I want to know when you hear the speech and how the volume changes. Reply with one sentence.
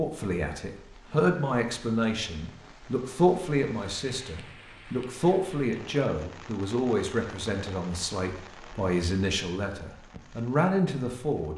You can hear the speech from 0.0 to 11.5 s, at a steady volume.